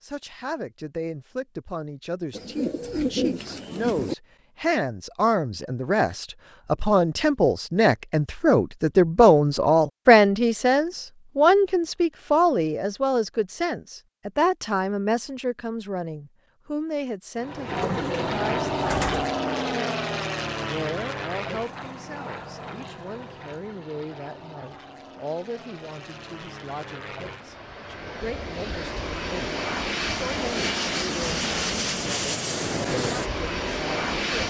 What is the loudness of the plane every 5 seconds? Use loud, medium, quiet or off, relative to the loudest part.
off, off, off, loud, medium, medium, loud.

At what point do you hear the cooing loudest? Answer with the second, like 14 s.
3 s.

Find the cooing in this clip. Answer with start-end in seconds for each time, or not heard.
2.3-4.2, 17.6-19.4.